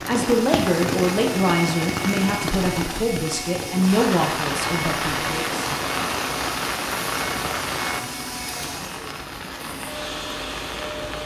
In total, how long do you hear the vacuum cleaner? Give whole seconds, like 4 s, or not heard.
11 s.